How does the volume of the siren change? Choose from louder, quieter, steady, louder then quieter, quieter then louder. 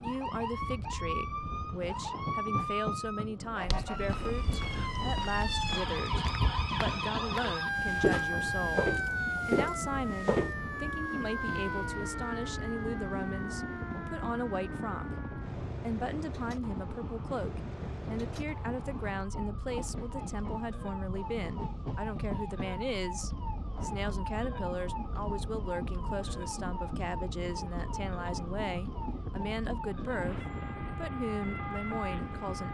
quieter.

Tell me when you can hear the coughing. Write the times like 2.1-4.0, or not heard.
not heard.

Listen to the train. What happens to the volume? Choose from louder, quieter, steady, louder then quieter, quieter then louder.
steady.